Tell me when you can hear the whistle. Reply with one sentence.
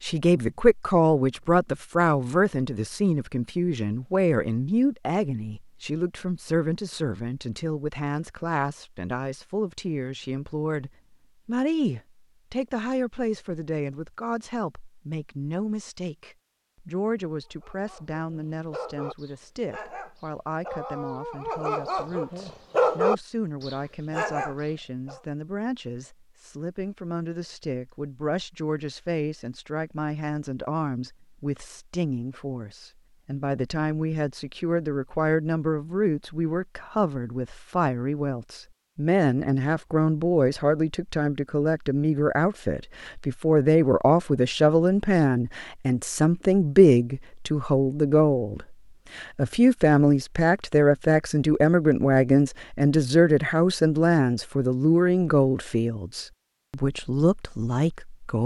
You can't hear the whistle here.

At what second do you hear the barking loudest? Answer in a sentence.
The volume of the barking peaks at 23 seconds.